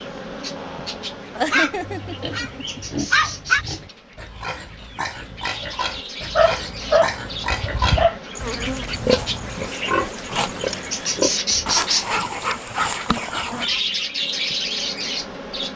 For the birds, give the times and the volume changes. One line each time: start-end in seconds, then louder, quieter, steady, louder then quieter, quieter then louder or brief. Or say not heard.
0.0-15.7 louder.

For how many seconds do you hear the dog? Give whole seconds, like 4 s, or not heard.
6 s.